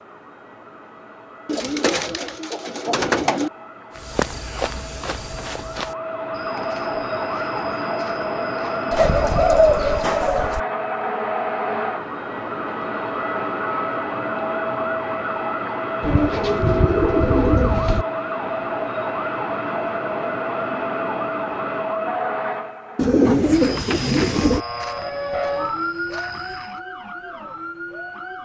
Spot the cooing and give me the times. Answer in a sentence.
The cooing can be heard from 1.4 to 3.5 s, from 8.9 to 10.6 s, from 16.0 to 18.1 s and from 22.9 to 24.6 s.